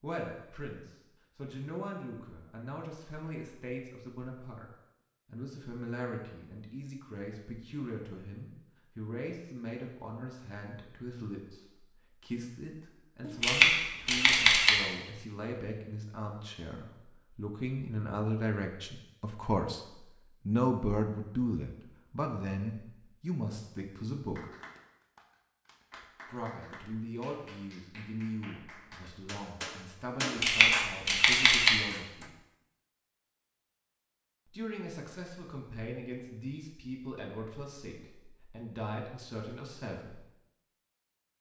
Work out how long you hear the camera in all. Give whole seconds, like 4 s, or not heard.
3 s.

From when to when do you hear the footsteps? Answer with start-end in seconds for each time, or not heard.
not heard.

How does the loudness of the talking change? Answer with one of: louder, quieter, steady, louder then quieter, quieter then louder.
louder then quieter.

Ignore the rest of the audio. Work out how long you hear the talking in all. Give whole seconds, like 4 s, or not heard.
35 s.